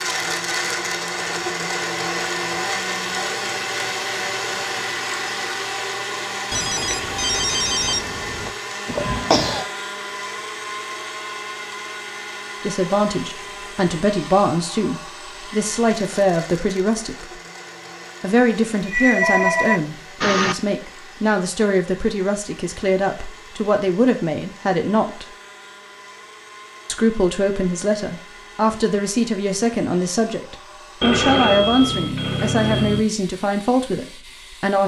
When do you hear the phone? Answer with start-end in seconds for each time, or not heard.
6.5-8.5, 18.8-20.6, 31.0-33.0.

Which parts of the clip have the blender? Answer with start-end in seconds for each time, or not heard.
0.0-34.8.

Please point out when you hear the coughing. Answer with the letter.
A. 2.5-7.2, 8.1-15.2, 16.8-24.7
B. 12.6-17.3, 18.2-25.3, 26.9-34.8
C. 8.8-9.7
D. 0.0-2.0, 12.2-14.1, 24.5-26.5
C.